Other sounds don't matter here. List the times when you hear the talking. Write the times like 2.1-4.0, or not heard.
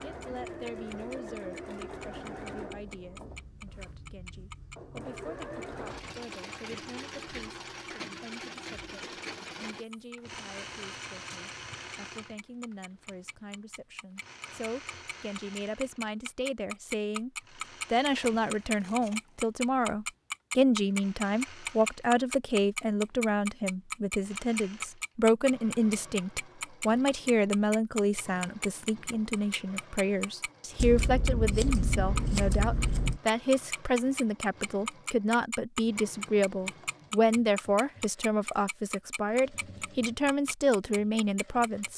0.0-17.3, 17.9-41.9.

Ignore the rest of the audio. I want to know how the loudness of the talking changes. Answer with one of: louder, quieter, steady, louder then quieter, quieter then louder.
louder.